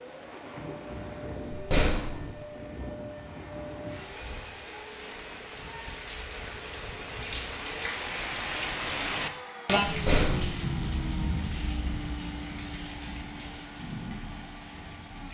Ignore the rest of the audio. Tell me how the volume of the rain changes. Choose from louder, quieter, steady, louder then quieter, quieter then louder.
louder then quieter.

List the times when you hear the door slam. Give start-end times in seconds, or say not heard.
1.5-2.3, 9.8-10.6.